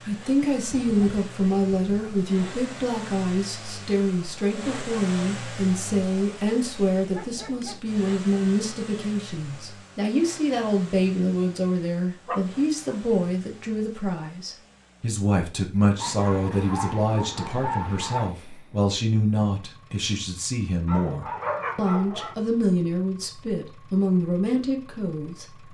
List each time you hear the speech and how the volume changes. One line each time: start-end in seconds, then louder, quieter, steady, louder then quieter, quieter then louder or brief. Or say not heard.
0.0-25.6 steady.